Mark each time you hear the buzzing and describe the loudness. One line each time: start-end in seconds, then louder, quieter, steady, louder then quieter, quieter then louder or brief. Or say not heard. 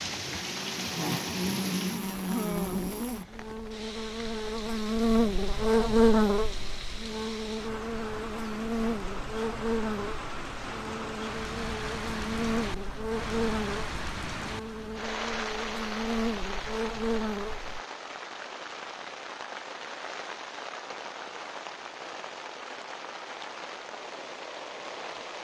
0.0-17.8 louder then quieter.